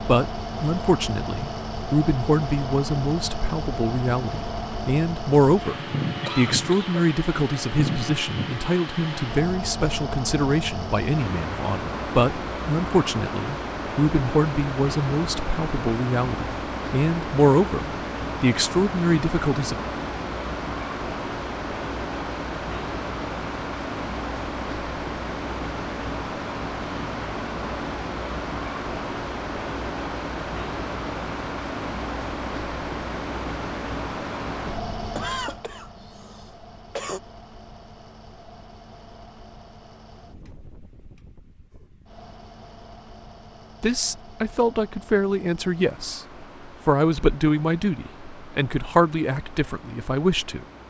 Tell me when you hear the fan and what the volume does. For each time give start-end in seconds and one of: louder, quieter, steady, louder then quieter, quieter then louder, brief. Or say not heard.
0.0-50.8 quieter.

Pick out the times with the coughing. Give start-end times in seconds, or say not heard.
6.2-7.0, 34.6-37.2.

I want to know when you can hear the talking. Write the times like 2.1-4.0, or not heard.
0.0-19.8, 43.8-50.6.